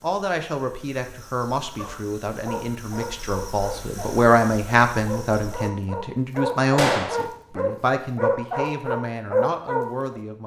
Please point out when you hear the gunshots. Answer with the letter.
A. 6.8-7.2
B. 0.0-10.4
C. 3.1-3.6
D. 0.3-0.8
A.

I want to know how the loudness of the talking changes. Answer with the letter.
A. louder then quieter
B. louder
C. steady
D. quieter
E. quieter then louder
A.